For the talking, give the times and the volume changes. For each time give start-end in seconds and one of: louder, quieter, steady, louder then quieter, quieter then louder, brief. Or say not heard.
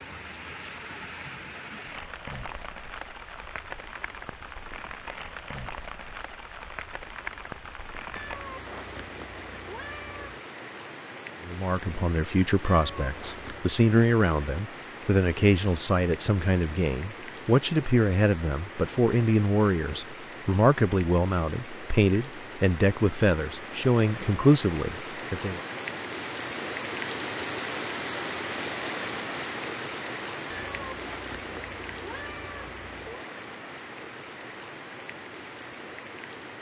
11.4-25.6 steady.